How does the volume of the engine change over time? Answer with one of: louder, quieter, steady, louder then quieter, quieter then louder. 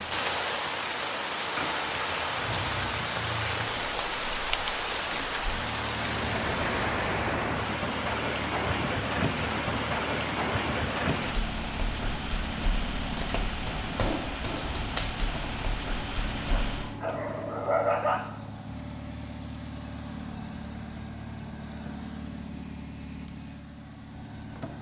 steady.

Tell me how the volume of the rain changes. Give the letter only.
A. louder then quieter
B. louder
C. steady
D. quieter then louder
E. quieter
C.